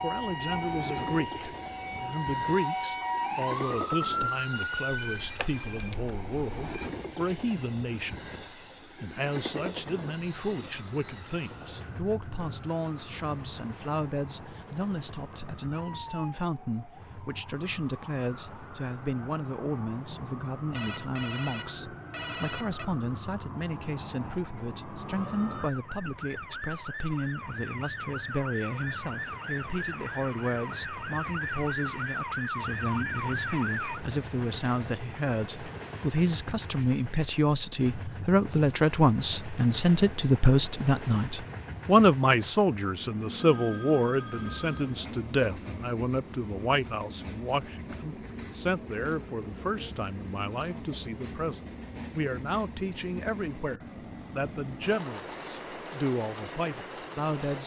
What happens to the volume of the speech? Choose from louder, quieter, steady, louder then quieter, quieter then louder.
louder then quieter.